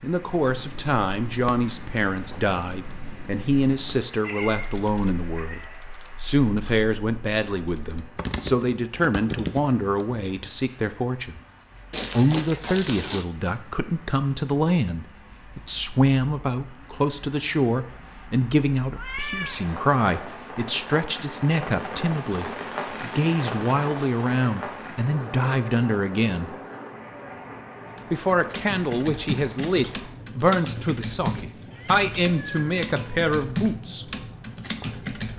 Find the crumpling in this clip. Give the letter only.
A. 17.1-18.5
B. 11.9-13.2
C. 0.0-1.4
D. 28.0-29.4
B.